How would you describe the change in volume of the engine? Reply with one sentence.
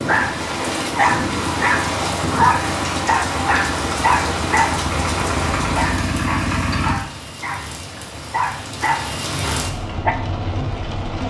The loudness of the engine goes up.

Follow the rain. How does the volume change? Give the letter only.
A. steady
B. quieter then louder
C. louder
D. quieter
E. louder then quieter
B.